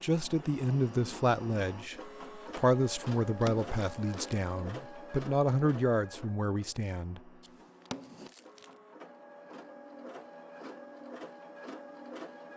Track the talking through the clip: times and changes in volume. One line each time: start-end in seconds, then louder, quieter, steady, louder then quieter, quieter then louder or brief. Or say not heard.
0.0-7.2 steady.